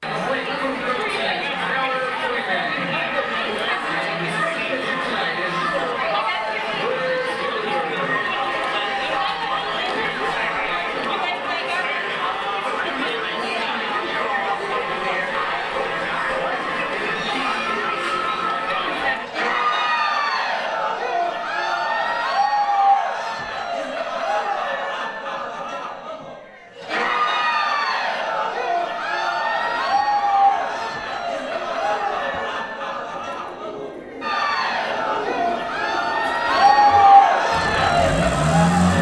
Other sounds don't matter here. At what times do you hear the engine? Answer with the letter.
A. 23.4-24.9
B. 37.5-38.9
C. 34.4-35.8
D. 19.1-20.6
B.